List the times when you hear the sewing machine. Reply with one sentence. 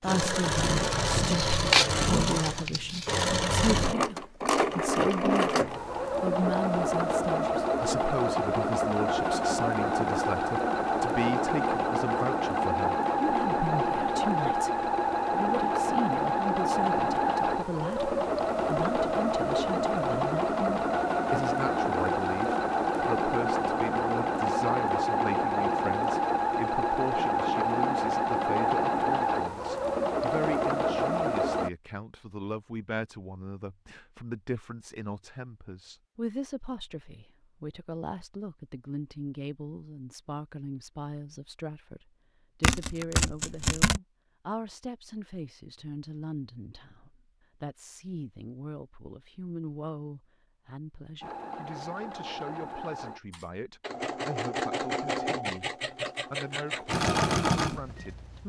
The sewing machine can be heard from 0.0 to 31.7 s and from 51.2 to 58.4 s.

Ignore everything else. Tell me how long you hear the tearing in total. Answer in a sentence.
You can hear the tearing for 4 seconds altogether.